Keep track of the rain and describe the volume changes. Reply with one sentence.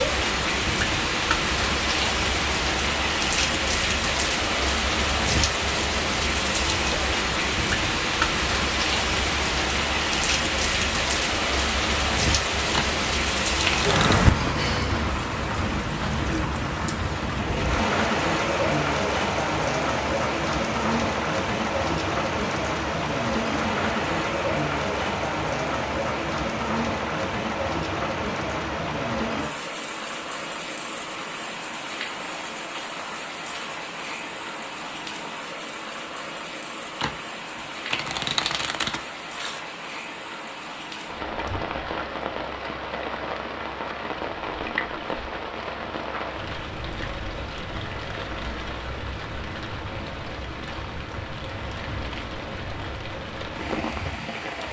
The volume of the rain goes down.